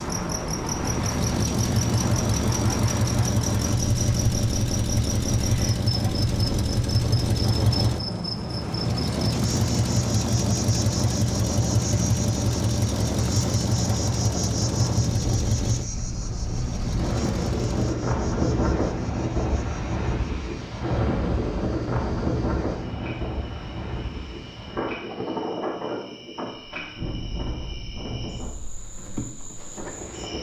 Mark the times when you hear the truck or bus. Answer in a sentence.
The truck or bus can be heard from 0.0 to 17.9 s.